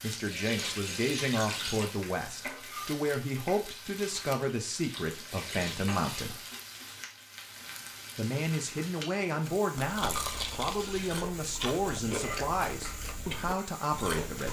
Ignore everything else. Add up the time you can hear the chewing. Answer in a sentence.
You can hear the chewing for 5 seconds altogether.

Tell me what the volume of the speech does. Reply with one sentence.
The loudness of the speech stays about the same.